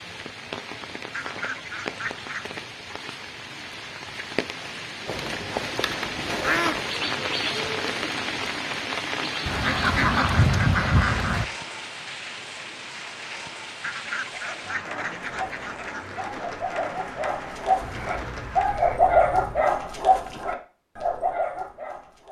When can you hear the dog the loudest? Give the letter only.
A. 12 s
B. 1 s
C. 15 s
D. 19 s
D.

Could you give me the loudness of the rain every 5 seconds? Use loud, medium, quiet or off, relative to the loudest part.
medium, loud, medium, medium, off.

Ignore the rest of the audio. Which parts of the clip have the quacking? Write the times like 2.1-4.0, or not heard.
1.1-2.6, 5.0-6.8, 9.4-11.4, 13.8-16.2, 17.8-19.8.